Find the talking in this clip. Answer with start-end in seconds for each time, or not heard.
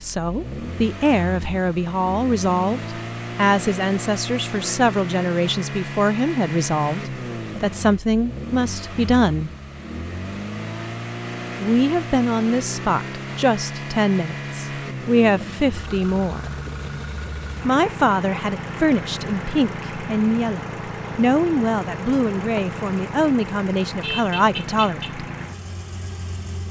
0.0-9.5, 11.6-16.6, 17.6-25.1.